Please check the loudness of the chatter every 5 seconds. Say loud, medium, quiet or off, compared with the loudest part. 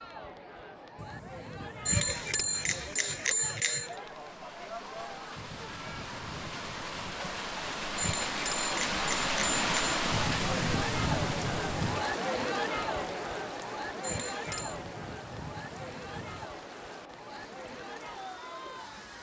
medium, medium, loud, medium.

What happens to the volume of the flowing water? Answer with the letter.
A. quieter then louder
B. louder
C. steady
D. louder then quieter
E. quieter
D.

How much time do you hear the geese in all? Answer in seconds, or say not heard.
8 s.